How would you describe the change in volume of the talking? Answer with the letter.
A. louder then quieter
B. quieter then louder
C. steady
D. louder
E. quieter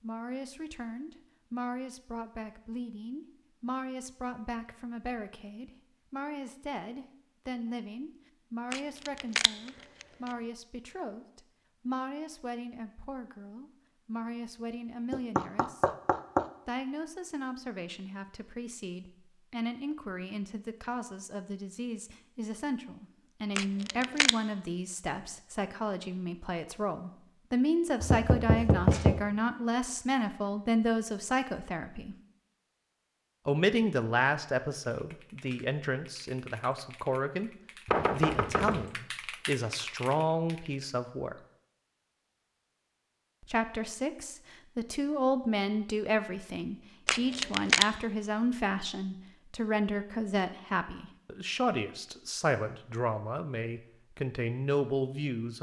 D.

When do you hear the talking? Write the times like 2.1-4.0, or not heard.
0.0-15.8, 16.6-32.1, 33.5-37.5, 38.1-41.4, 43.4-55.5.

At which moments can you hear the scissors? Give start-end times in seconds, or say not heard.
8.7-10.1, 23.6-24.3, 47.0-47.9.